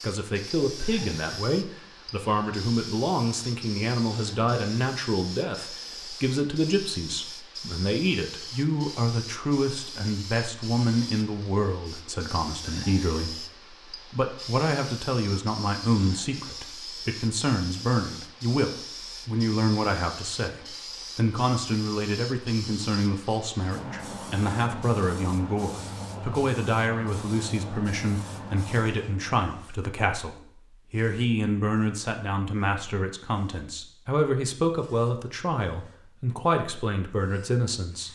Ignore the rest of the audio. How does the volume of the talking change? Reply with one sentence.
The loudness of the talking stays about the same.